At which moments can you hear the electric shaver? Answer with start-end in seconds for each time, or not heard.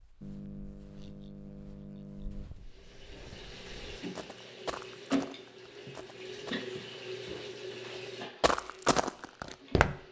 not heard.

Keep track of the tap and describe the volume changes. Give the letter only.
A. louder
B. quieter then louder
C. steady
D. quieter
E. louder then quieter
E.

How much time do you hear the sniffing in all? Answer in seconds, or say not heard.
2 s.